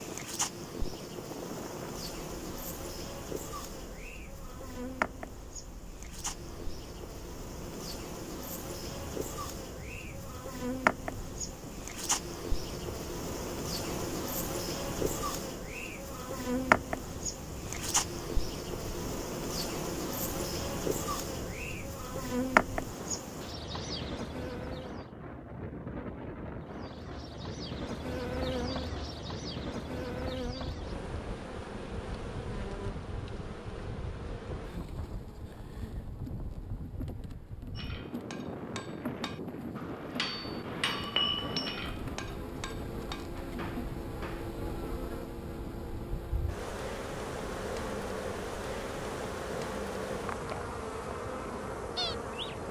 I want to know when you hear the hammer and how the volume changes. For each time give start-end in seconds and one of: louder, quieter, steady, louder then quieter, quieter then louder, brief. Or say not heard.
37.8-44.5 louder then quieter.